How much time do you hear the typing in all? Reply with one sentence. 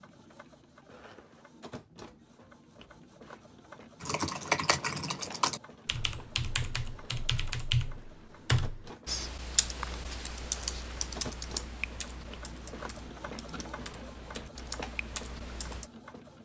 The typing can be heard for 12 seconds in total.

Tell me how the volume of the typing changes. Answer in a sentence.
The volume of the typing goes down.